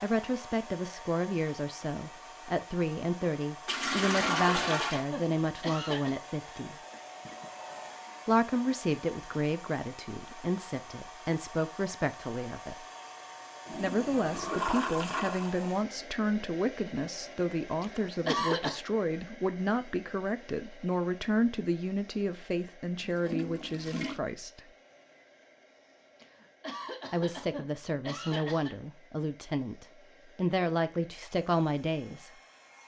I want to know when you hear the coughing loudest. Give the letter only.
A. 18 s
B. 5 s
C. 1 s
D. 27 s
A.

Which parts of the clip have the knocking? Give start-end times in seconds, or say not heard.
not heard.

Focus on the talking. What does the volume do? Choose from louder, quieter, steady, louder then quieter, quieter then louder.
steady.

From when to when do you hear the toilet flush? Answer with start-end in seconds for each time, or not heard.
3.6-5.0, 13.7-15.6, 23.0-24.2.